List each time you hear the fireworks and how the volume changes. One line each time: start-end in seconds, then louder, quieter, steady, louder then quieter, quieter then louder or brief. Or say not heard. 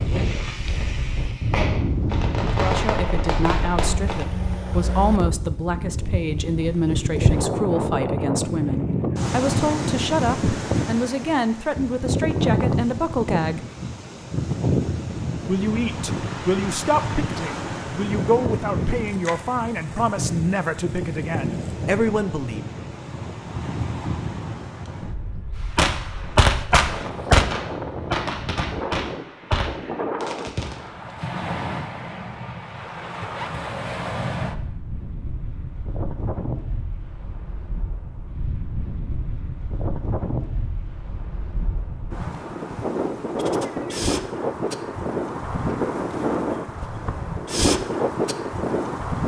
0.0-4.2 louder
25.8-30.9 quieter.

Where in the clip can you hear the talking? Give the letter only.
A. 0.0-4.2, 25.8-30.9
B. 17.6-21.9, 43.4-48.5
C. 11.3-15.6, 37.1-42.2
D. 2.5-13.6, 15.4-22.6
D.